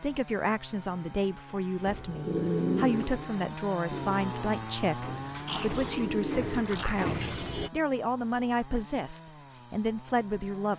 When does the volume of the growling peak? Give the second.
3 s.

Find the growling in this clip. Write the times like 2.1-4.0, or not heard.
2.2-3.3, 5.5-7.2.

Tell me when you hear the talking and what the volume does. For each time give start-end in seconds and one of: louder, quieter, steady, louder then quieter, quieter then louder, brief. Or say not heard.
0.0-10.7 steady.